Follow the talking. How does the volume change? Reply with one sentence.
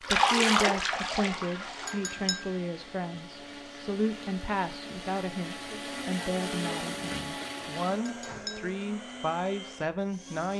The volume of the talking stays about the same.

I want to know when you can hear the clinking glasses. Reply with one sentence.
You can hear the clinking glasses from 1.9 to 2.5 s and from 8.1 to 8.7 s.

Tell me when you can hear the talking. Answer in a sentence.
The talking can be heard from 0.0 to 10.5 s.